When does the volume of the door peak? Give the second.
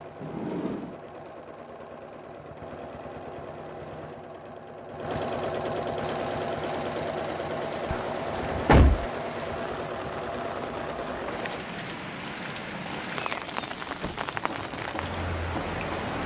9 s.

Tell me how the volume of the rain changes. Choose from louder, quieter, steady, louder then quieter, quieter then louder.
louder.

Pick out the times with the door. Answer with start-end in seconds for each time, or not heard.
0.2-0.9, 7.9-9.1, 13.2-14.2.